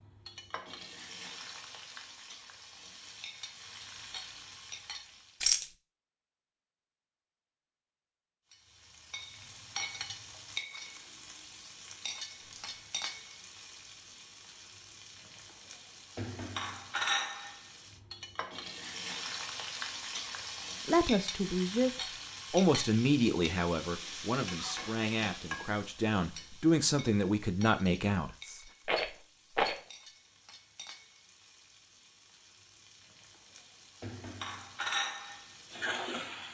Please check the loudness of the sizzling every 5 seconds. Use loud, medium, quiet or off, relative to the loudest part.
medium, medium, medium, loud, loud, medium, medium, loud.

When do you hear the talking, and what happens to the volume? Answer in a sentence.
The talking can be heard briefly from 20.9 to 21.9 s; and from 22.5 to 28.6 s, getting quieter then louder.